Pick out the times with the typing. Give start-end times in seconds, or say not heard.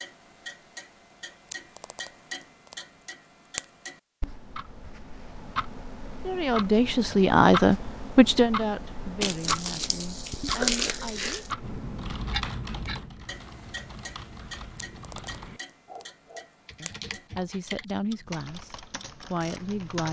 11.6-20.0.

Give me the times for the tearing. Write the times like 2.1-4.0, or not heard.
9.2-11.6.